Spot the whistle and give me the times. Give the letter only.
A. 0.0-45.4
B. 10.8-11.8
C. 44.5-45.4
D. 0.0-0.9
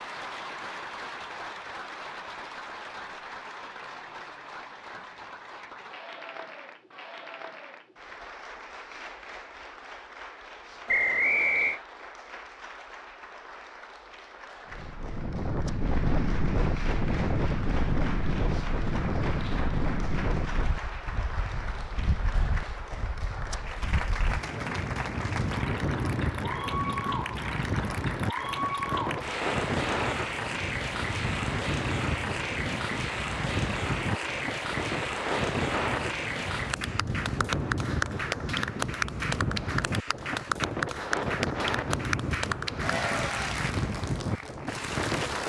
B.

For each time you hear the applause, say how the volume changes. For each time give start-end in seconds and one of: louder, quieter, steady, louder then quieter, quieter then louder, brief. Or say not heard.
0.0-45.4 louder.